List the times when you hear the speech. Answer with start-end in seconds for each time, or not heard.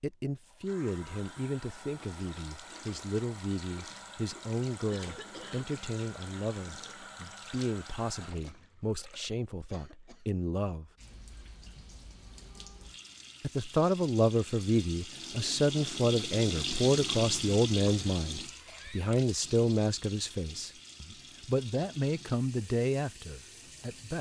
0.0-10.9, 13.4-24.1.